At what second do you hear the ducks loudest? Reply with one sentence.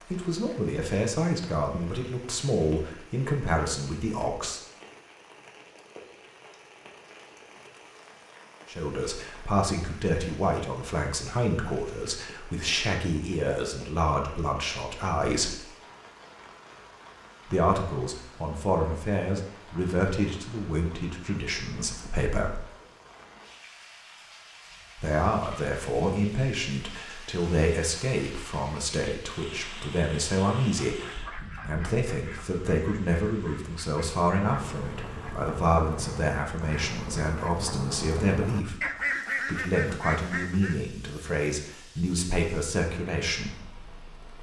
The loudest moment of the ducks is at 39 seconds.